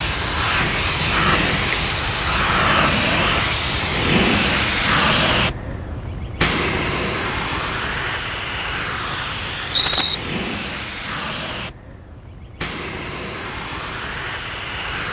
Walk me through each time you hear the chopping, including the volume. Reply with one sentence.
The chopping can't be heard in this clip.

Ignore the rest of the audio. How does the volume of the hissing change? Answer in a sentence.
The volume of the hissing goes down.